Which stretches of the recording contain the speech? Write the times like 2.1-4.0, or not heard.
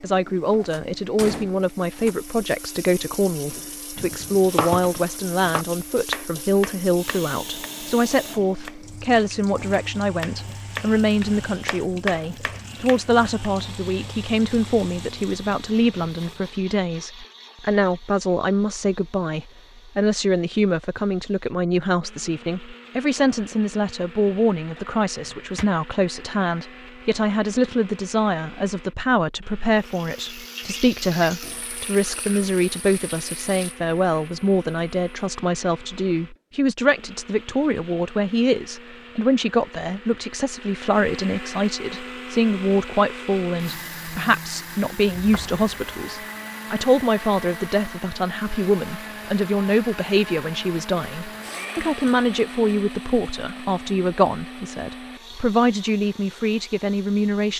0.0-57.5.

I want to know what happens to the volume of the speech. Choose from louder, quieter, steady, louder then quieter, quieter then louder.
steady.